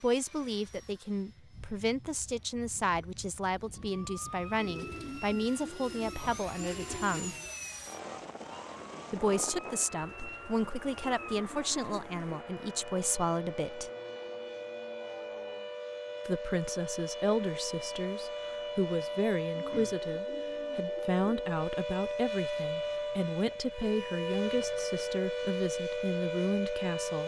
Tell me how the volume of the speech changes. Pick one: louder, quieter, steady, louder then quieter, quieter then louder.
steady.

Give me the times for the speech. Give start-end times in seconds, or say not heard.
0.0-7.3, 9.1-13.9, 16.2-27.2.